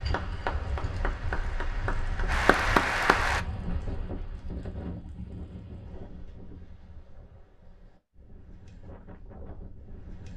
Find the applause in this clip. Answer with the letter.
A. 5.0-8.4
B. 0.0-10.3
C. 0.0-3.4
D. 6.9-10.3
C.